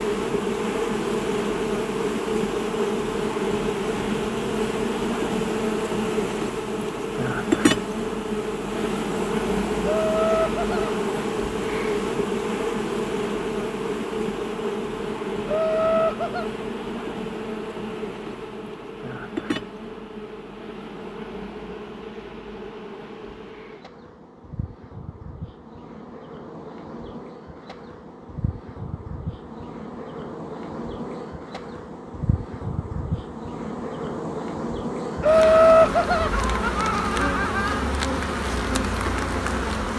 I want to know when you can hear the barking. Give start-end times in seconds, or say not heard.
not heard.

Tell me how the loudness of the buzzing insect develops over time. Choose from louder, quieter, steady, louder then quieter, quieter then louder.
quieter then louder.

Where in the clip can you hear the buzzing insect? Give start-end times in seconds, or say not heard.
0.0-39.9.